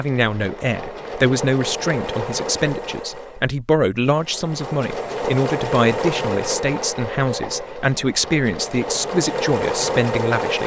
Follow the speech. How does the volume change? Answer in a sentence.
The volume of the speech stays about the same.